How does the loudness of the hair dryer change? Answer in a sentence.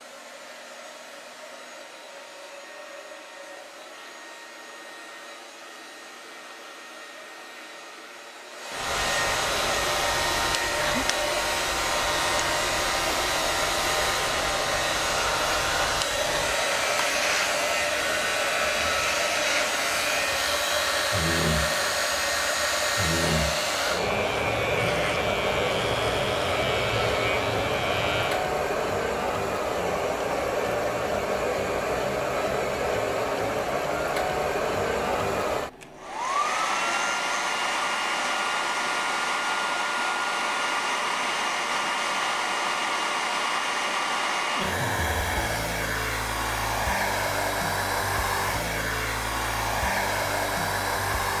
The loudness of the hair dryer goes up.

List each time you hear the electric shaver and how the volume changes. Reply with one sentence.
The electric shaver can be heard from 8.8 to 28.4 s, at a steady volume.